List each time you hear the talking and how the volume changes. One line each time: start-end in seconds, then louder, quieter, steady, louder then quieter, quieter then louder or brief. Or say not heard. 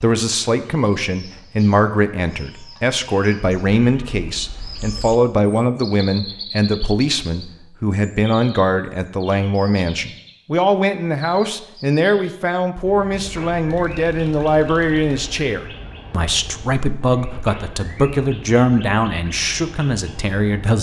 0.0-20.7 steady.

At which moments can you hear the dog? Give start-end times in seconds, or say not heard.
not heard.